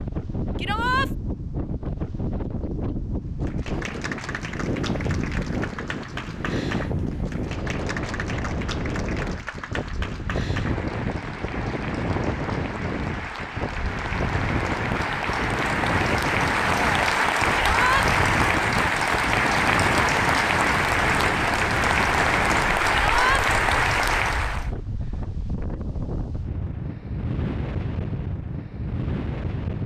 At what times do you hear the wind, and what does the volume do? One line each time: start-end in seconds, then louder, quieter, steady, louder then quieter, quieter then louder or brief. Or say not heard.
0.0-29.8 steady.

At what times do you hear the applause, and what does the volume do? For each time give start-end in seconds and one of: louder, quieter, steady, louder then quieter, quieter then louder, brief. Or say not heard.
3.4-24.7 louder.